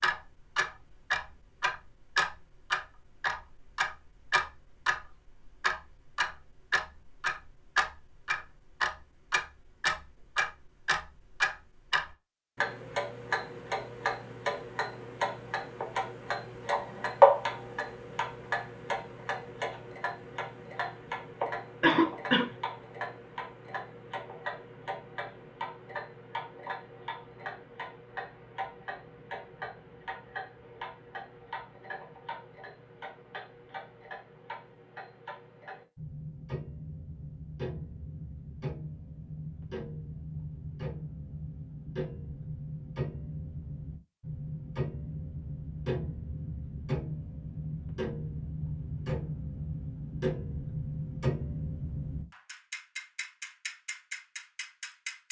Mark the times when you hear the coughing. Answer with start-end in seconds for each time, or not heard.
21.8-22.5.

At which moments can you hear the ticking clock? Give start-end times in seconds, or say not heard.
0.0-55.2.